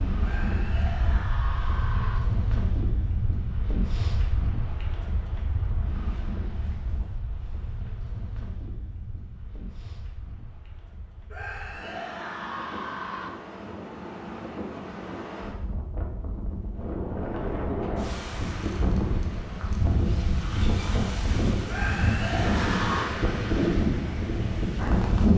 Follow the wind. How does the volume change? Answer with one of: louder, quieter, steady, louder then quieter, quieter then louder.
quieter then louder.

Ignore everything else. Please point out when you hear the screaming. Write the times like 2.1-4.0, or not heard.
0.2-2.2, 11.3-13.3, 21.6-23.1.